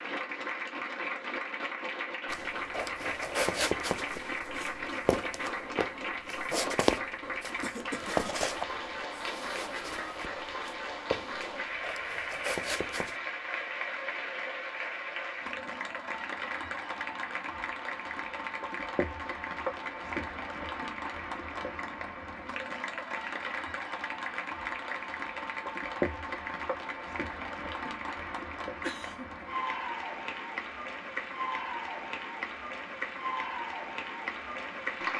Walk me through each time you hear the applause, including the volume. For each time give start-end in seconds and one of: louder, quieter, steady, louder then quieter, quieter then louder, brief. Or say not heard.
0.0-35.1 steady.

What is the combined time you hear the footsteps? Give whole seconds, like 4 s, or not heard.
11 s.